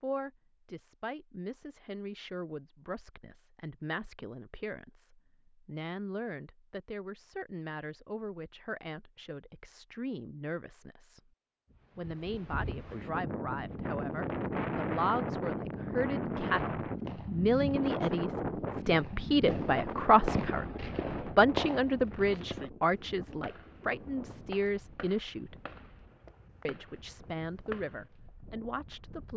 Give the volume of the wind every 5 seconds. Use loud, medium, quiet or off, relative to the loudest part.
off, off, loud, loud, medium, quiet.